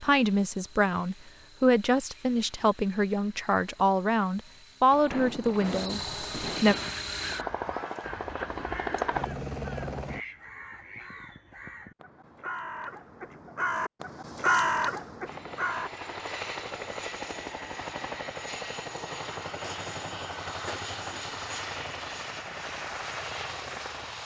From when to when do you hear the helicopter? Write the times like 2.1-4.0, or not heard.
0.0-10.2, 15.2-24.2.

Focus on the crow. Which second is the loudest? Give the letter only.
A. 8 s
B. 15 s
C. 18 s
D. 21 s
B.